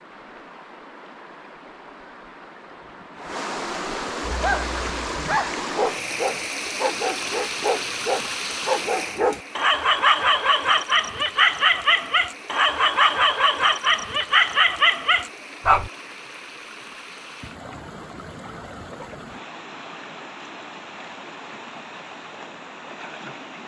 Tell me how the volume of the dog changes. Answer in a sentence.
The volume of the dog goes up.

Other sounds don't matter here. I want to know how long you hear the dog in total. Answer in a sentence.
The dog can be heard for 12 seconds in total.